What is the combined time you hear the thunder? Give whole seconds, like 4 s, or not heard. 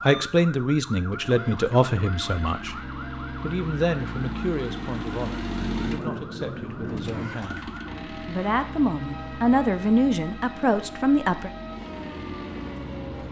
2 s.